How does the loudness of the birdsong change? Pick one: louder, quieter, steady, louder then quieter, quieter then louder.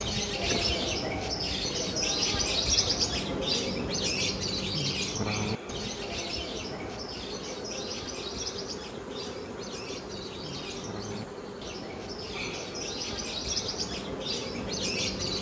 quieter then louder.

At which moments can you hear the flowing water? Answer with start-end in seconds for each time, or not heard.
not heard.